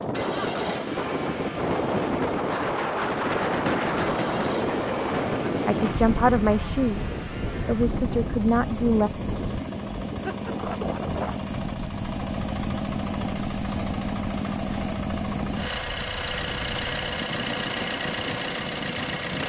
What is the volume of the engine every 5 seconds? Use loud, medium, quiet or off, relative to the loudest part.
medium, medium, loud, loud.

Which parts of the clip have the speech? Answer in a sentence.
The speech can be heard from 5.7 to 9.1 s.